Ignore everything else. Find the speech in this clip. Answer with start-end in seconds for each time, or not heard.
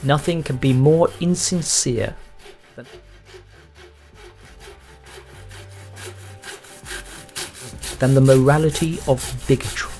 0.0-2.9, 8.0-9.9.